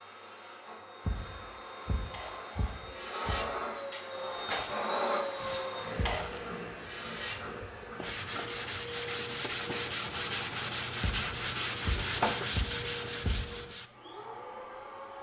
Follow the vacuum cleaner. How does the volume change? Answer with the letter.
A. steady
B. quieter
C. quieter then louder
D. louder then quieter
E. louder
D.